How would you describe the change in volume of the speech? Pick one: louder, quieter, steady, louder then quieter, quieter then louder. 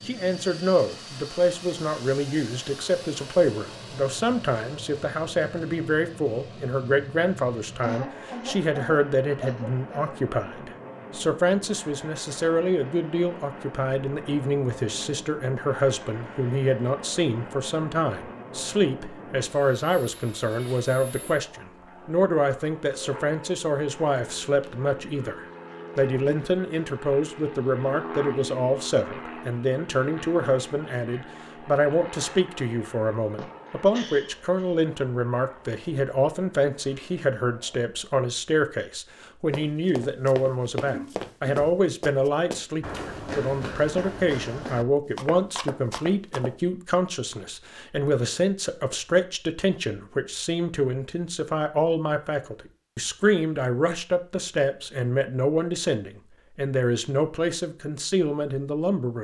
steady.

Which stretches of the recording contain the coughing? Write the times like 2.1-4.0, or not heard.
7.8-10.2, 33.4-34.8, 40.9-41.5.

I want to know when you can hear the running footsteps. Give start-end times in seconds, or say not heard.
39.5-46.5.